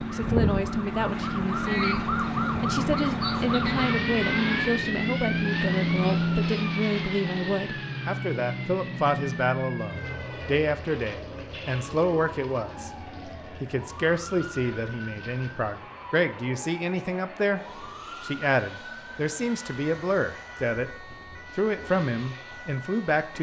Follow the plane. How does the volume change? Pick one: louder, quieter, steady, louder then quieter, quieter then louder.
quieter.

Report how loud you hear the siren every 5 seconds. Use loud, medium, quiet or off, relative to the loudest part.
loud, medium, quiet, quiet, quiet.